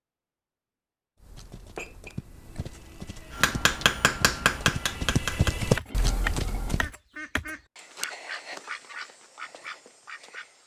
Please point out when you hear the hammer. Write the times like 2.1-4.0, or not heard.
3.3-6.8.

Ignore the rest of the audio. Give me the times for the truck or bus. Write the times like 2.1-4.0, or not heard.
not heard.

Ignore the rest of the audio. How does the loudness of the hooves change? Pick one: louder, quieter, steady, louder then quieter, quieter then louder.
louder.